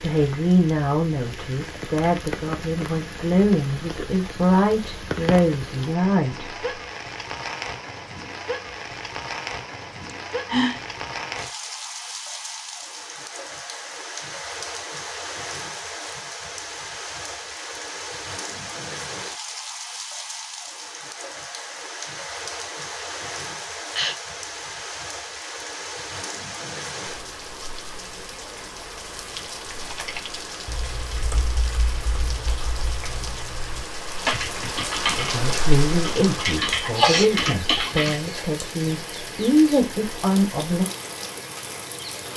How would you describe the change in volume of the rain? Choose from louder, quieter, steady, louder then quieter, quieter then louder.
steady.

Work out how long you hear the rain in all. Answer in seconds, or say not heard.
42 s.